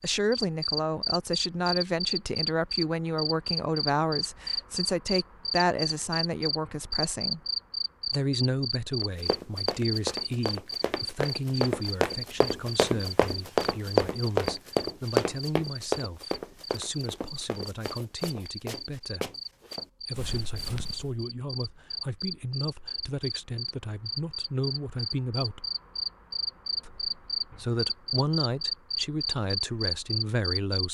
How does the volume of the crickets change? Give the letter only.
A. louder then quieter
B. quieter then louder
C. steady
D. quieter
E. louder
B.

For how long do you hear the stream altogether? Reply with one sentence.
The stream can't be heard in this clip.